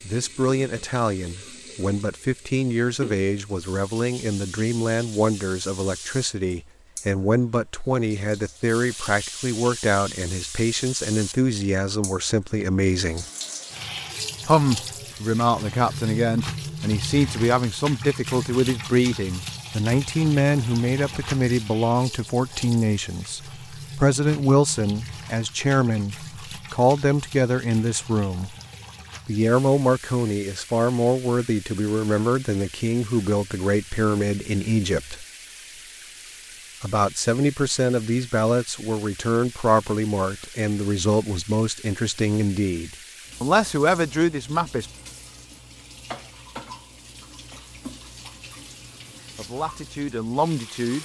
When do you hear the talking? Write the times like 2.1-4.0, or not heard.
0.0-13.2, 14.4-28.6, 29.2-35.2, 36.8-44.9, 49.4-51.0.